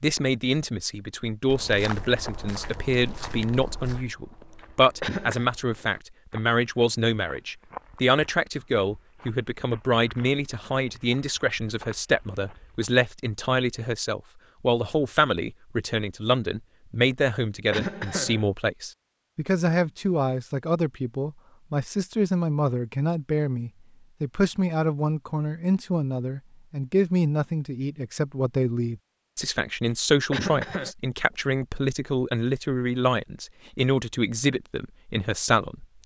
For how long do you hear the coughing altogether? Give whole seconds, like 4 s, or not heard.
2 s.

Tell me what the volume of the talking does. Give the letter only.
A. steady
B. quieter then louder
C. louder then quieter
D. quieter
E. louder
A.